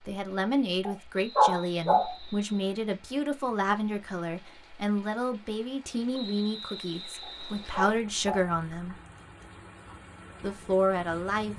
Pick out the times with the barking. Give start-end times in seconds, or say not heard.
0.8-2.1, 7.2-8.5.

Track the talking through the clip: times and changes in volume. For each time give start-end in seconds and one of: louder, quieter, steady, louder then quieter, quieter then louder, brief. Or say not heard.
0.1-8.9 steady
10.4-11.5 brief.